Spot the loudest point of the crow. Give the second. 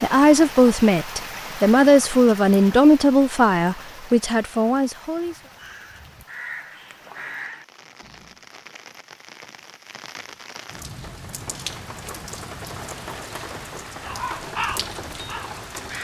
15 s.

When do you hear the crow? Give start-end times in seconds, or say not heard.
5.2-8.4, 14.0-15.9.